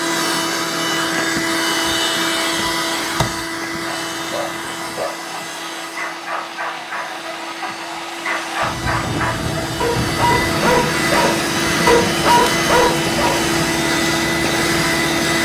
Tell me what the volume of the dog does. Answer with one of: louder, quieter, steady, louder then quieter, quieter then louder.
louder.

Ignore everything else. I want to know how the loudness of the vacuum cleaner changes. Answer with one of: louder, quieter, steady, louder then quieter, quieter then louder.
quieter then louder.